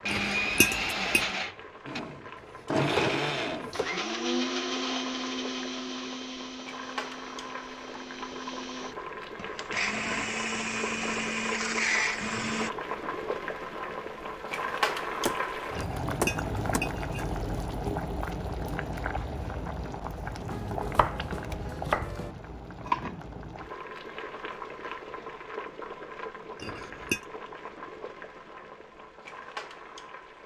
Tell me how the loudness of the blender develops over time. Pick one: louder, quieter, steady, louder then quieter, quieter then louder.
quieter then louder.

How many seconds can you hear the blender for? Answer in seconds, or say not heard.
13 s.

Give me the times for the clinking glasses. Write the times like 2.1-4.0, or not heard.
0.1-1.2, 15.8-17.3, 26.6-27.2.